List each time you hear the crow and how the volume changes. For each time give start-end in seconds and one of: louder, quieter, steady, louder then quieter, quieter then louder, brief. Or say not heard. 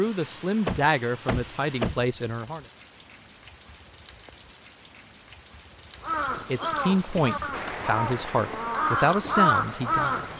6.0-10.3 louder.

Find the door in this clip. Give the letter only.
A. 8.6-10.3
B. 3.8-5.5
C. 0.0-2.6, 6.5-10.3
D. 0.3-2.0
D.